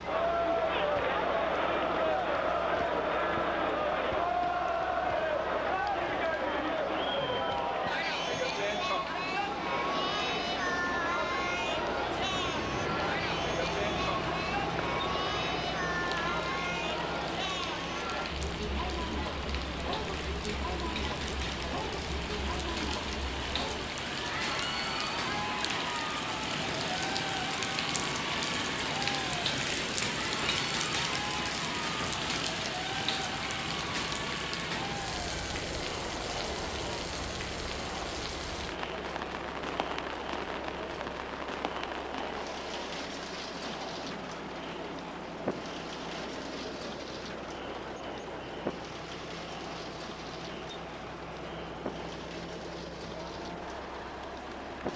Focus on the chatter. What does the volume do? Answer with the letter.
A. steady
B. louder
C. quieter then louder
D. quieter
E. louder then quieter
D.